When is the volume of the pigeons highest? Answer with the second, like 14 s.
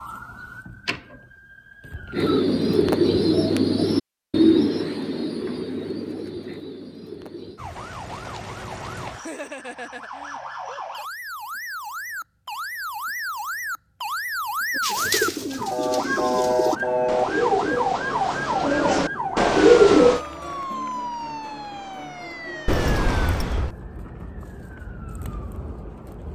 20 s.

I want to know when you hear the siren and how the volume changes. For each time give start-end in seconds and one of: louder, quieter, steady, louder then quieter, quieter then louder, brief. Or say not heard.
0.0-2.5 brief
7.5-26.3 louder then quieter.